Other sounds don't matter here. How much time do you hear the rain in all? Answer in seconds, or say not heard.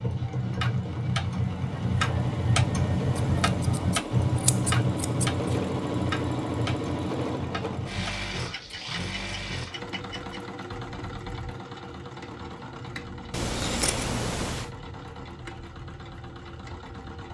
not heard.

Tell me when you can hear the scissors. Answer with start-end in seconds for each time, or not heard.
3.1-5.5, 13.3-14.7.